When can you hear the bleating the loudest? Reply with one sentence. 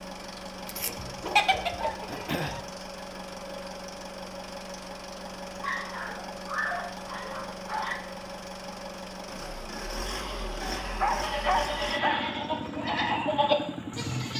The volume of the bleating peaks at 13 seconds.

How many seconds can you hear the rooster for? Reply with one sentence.
The rooster can be heard for 2 seconds in total.